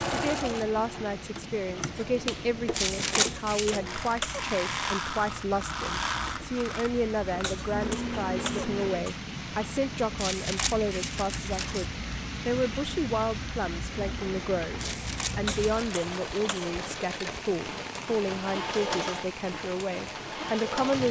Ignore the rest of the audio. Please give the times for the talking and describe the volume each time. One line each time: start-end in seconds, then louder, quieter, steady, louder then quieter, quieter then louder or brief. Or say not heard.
0.1-21.0 steady.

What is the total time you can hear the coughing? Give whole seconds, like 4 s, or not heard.
4 s.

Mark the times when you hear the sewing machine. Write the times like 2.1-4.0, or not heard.
0.0-9.1, 13.9-21.0.